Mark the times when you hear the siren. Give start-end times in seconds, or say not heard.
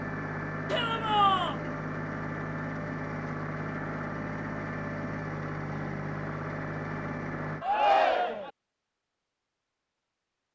not heard.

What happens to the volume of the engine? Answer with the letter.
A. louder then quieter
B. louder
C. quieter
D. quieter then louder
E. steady
E.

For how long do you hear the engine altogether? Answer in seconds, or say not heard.
8 s.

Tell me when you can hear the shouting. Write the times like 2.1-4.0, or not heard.
0.7-1.6, 7.6-8.5.